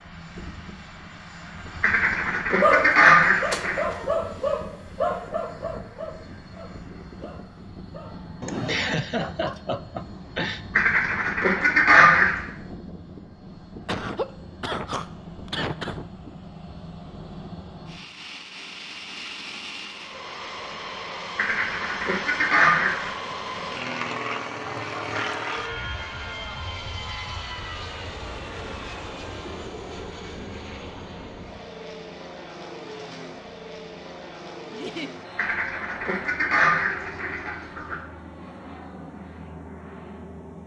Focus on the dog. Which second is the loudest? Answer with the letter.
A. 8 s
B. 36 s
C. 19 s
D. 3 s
D.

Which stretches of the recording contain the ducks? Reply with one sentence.
You can hear the ducks from 1.8 to 3.8 s, from 10.8 to 12.4 s, from 21.4 to 23.1 s and from 35.4 to 38.0 s.